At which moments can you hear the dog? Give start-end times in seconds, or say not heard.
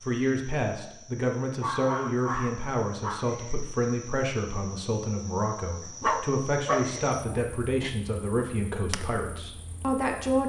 1.6-3.3, 6.0-7.9.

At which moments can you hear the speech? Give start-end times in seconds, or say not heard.
0.0-10.4.